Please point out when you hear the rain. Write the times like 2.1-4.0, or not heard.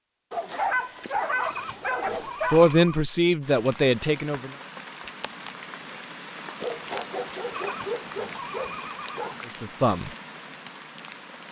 3.4-11.4.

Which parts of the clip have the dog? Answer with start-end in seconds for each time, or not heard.
0.3-2.8, 6.5-9.3.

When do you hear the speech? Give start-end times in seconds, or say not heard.
2.5-4.5, 9.4-10.1.